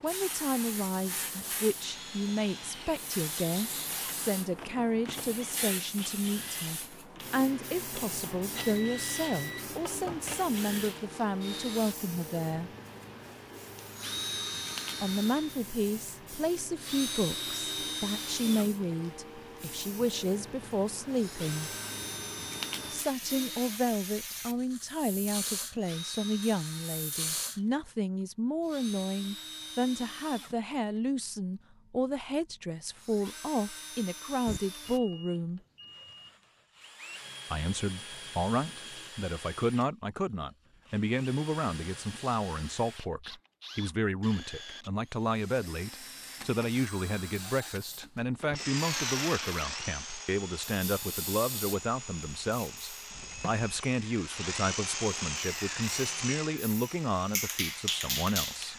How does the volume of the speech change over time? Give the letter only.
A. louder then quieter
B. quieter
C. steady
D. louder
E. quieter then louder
C.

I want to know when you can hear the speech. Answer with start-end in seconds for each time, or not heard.
0.0-12.7, 15.0-21.7, 22.9-35.6, 37.5-58.7.